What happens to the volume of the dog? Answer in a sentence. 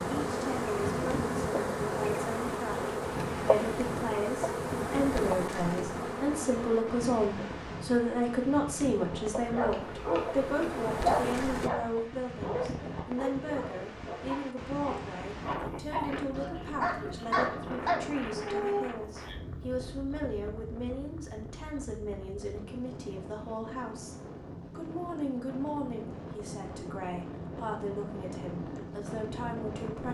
The loudness of the dog goes down, then up.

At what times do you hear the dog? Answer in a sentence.
You can hear the dog from 9.1 to 18.9 s.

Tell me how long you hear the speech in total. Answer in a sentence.
You can hear the speech for 30 seconds altogether.